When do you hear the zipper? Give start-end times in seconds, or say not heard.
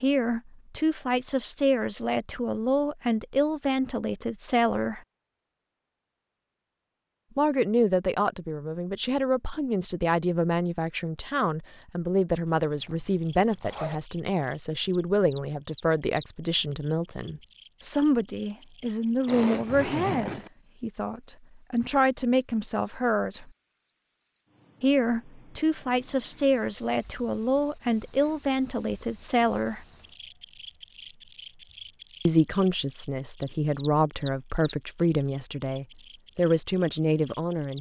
12.4-14.0, 19.2-20.5.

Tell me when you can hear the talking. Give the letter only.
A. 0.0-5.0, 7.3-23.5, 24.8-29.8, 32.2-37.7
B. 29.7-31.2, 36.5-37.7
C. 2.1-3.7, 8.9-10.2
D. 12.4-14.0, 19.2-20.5
A.